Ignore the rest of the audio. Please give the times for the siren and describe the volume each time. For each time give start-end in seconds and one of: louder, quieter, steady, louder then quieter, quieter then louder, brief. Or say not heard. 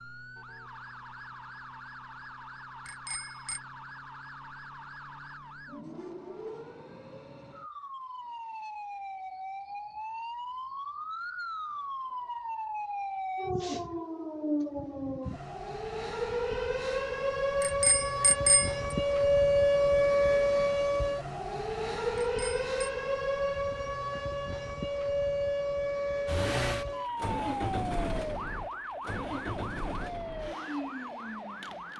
0.0-31.9 louder then quieter.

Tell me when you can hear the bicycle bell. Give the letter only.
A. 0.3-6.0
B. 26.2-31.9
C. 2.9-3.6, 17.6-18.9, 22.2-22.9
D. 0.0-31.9
C.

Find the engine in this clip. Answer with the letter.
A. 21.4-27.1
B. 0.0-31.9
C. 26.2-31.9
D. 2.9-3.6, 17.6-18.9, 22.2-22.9
C.